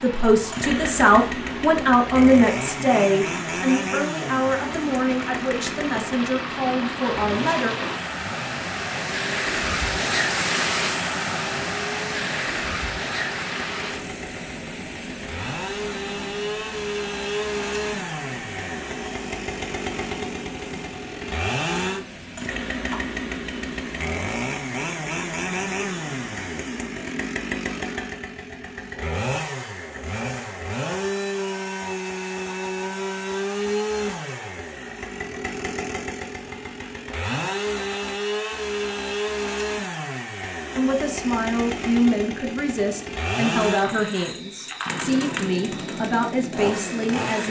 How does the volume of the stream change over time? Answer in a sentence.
The loudness of the stream goes up, then down.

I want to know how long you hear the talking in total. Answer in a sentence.
The talking can be heard for 14 seconds in total.